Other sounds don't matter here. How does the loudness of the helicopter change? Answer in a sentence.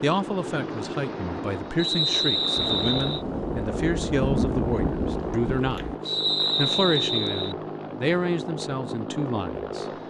The loudness of the helicopter stays about the same.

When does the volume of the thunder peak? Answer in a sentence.
The loudest moment of the thunder is at 4 seconds.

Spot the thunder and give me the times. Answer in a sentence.
The thunder can be heard from 2.5 to 6.0 s.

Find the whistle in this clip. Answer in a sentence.
The whistle can be heard from 1.8 to 3.2 s and from 6.0 to 7.5 s.